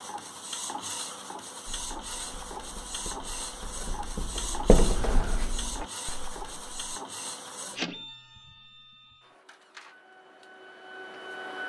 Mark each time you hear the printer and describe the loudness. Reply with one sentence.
You can hear the printer from 0.0 to 11.6 s, getting quieter.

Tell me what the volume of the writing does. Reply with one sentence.
The volume of the writing goes up, then down.